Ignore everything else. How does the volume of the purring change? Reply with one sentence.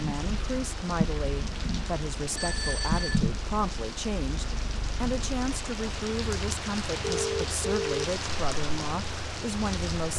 The volume of the purring goes down.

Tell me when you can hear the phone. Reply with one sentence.
The phone can be heard from 2.4 to 3.2 s and from 7.0 to 8.1 s.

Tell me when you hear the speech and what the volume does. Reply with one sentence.
You can hear the speech from 0.0 to 10.1 s, at a steady volume.